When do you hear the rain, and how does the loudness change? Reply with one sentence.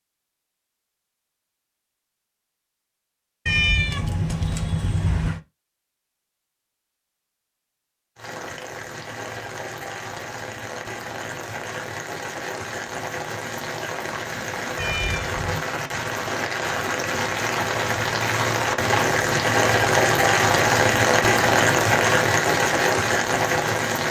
The rain can be heard from 8.2 to 24.0 s, getting louder.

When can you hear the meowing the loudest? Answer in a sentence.
The volume of the meowing peaks at 4 seconds.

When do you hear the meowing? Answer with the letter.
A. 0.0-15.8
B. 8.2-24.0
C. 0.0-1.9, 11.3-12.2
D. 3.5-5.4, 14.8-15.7
D.